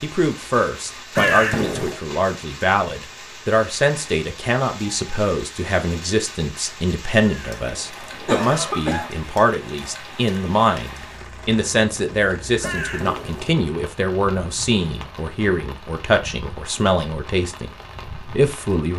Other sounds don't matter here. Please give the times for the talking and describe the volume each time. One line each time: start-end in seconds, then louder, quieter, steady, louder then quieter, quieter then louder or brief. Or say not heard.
0.0-18.9 steady.